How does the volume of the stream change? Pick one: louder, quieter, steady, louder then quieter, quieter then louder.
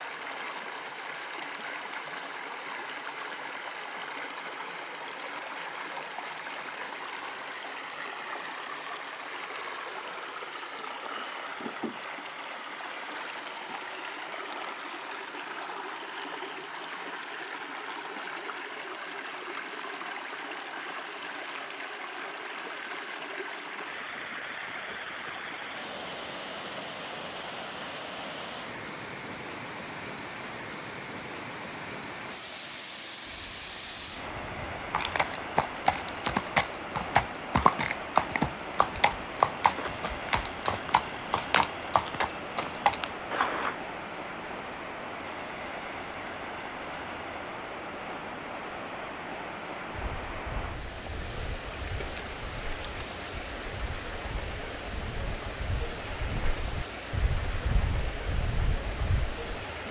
steady.